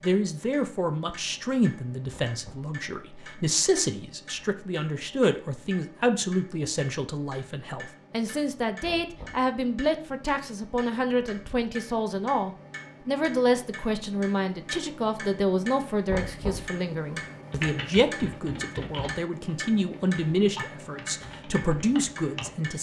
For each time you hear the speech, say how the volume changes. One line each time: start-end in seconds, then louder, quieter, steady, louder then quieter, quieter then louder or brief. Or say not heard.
0.0-22.7 steady.